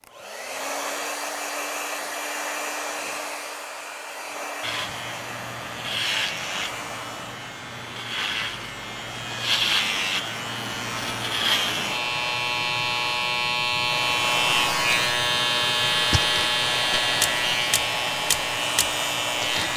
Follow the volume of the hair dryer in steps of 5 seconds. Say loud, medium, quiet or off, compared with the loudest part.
loud, medium, loud, loud.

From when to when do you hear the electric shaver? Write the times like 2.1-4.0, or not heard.
4.6-19.7.